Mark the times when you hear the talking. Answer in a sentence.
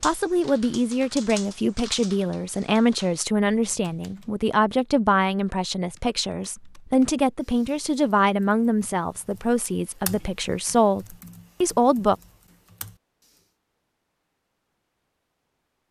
You can hear the talking from 0.0 to 12.2 s.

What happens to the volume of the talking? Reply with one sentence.
The loudness of the talking stays about the same.